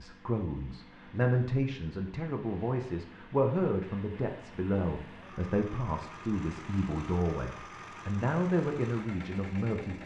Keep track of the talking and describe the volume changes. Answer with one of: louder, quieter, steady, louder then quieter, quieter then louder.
steady.